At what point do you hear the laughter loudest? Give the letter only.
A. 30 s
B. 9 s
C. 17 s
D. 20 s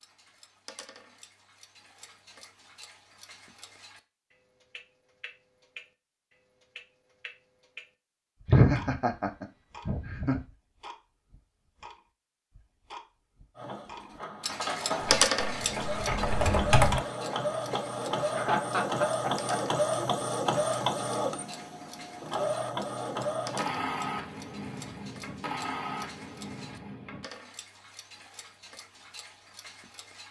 B.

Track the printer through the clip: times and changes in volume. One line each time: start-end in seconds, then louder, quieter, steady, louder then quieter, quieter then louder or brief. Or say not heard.
13.6-27.3 louder then quieter.